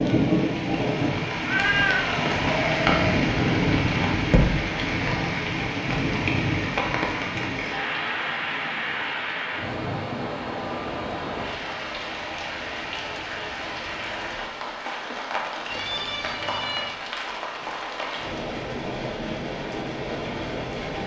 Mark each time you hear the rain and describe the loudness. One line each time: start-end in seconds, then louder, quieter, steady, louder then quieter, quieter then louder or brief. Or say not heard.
0.0-21.0 quieter.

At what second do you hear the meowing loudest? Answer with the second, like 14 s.
2 s.